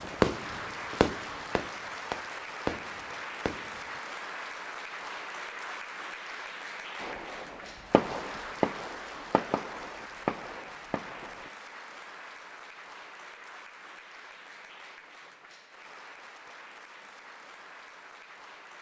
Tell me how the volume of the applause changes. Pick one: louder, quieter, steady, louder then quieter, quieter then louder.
quieter.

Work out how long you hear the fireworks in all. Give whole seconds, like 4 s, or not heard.
8 s.